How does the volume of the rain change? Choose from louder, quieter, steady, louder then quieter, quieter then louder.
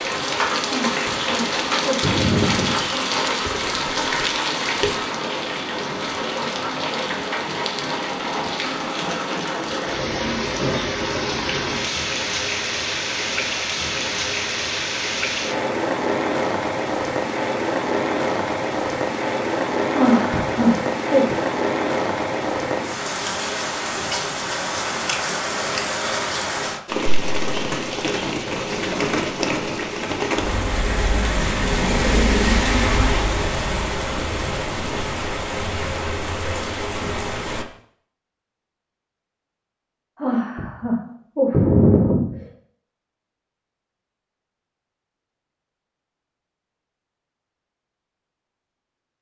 steady.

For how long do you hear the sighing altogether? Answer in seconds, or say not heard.
6 s.